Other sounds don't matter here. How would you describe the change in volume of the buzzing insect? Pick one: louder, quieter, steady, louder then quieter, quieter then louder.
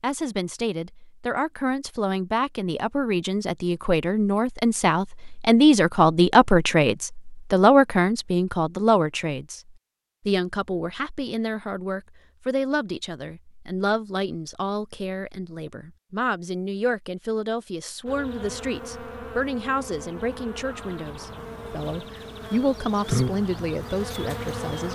louder.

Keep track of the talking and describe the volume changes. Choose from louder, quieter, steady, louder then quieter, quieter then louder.
louder then quieter.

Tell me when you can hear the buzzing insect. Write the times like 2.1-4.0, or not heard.
18.1-24.8.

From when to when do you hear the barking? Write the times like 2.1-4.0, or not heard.
not heard.